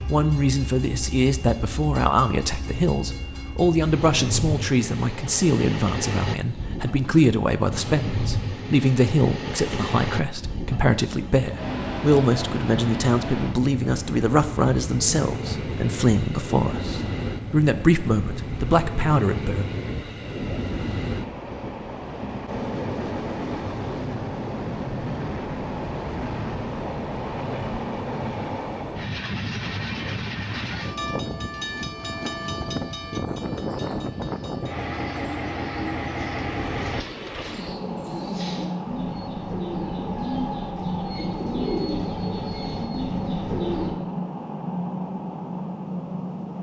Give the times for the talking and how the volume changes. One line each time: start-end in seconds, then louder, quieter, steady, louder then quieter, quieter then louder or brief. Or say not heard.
0.1-19.6 steady.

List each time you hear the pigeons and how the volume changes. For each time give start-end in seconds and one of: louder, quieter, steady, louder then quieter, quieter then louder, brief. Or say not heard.
33.2-44.0 louder.